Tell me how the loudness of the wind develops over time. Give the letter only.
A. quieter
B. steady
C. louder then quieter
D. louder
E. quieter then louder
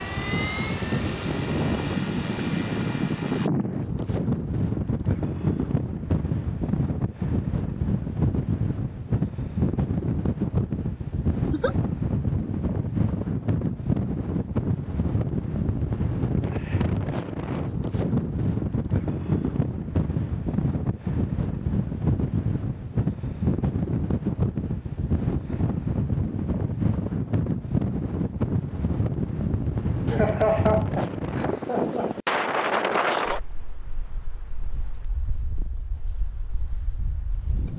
B.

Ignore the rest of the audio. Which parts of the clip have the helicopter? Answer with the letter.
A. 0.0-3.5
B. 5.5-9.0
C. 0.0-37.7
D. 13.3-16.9
A.